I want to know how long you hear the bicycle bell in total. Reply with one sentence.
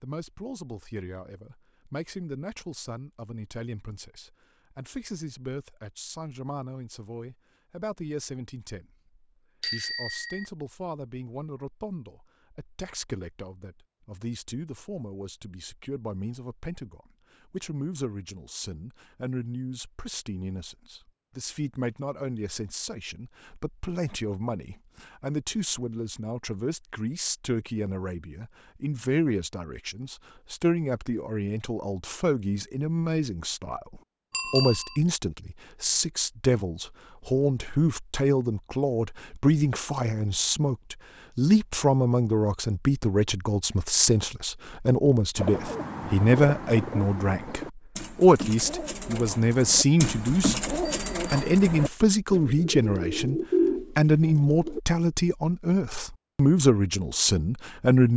You can hear the bicycle bell for 2 seconds altogether.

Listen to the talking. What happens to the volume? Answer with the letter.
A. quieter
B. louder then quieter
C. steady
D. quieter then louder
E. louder
E.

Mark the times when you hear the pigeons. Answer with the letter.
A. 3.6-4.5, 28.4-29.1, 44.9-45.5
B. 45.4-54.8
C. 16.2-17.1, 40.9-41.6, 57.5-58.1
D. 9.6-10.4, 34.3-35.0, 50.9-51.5
B.